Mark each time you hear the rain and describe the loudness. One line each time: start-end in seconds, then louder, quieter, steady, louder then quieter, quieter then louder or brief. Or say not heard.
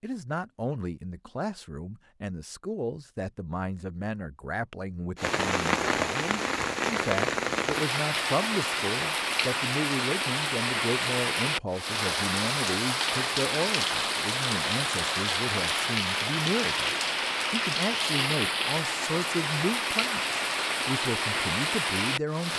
5.2-22.5 steady.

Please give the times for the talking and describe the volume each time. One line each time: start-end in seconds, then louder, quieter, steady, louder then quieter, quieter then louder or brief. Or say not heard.
0.0-22.5 steady.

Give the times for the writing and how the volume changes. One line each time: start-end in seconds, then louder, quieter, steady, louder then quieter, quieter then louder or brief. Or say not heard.
not heard.